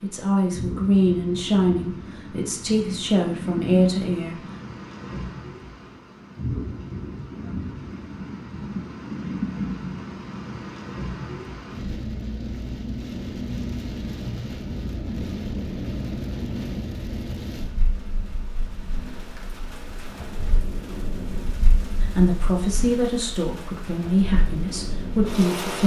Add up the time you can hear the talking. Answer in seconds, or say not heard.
8 s.